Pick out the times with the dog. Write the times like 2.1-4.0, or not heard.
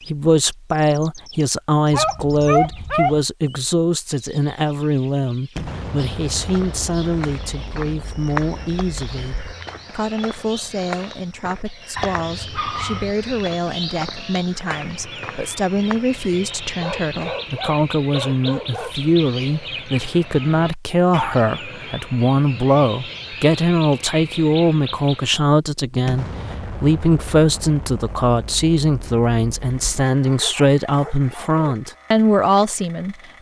1.9-3.2, 11.9-13.2, 16.8-19.7, 30.2-31.6.